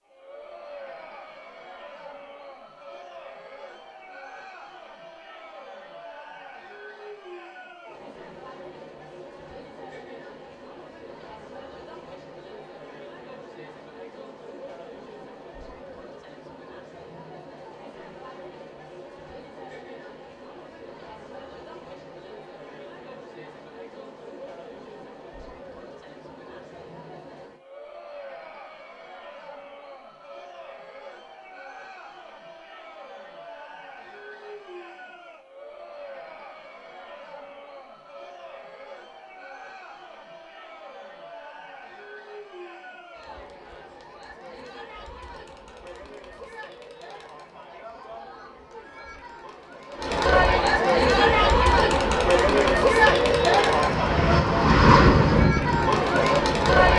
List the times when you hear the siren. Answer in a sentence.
The siren can't be heard in this clip.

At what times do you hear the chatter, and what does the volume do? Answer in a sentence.
The chatter can be heard from 0.1 to 56.9 s, getting louder.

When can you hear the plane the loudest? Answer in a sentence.
The volume of the plane peaks at 55 seconds.